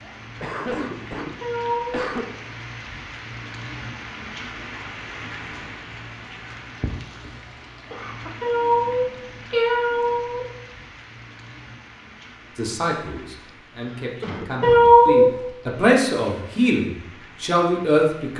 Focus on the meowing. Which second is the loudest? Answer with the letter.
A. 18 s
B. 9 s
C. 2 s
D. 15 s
D.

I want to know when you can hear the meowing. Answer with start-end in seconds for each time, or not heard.
1.4-2.1, 8.4-10.4, 14.6-15.3.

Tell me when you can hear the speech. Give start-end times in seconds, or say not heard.
12.6-18.3.